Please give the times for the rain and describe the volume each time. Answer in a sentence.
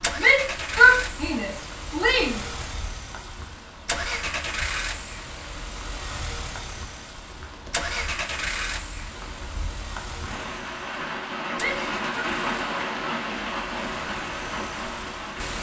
The rain can be heard from 0.0 to 15.5 s, getting louder.